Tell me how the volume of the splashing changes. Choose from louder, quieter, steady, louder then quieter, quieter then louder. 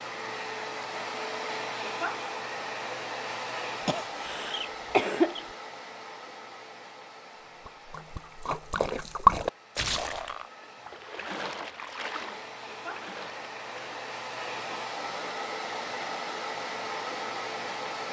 louder then quieter.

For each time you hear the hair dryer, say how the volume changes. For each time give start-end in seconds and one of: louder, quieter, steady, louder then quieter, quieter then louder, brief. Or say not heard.
0.0-18.0 quieter then louder.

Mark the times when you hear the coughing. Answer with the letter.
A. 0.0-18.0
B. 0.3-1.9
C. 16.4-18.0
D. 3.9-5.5
D.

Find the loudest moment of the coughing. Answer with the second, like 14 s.
5 s.